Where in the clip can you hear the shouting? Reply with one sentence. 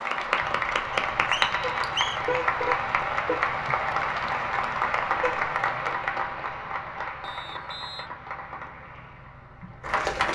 You can't hear the shouting here.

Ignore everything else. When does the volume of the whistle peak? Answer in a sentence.
The volume of the whistle peaks at 2 seconds.